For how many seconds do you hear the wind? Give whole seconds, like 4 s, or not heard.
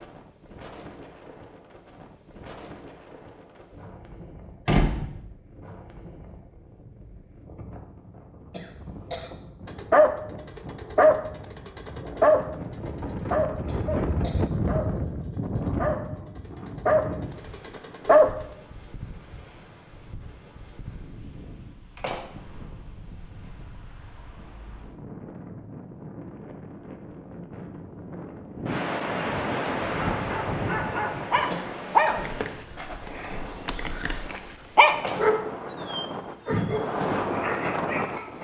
38 s.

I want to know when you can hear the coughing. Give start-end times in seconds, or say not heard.
8.5-9.3, 13.7-14.4, 31.5-32.1.